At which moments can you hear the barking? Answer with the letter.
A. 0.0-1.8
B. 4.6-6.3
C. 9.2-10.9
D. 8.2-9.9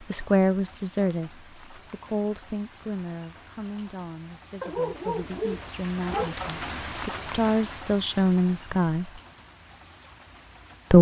B.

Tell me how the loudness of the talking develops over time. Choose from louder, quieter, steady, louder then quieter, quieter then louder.
quieter then louder.